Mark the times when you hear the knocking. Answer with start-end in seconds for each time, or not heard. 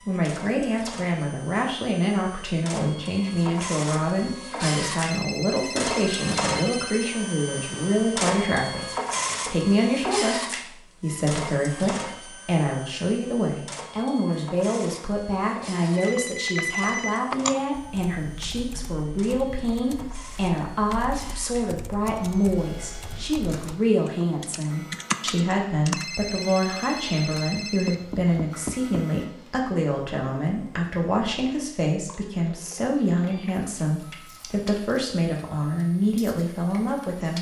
27.9-29.1.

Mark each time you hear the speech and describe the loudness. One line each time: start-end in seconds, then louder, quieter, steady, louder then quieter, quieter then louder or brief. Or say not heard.
0.1-8.8 steady
9.5-37.3 steady.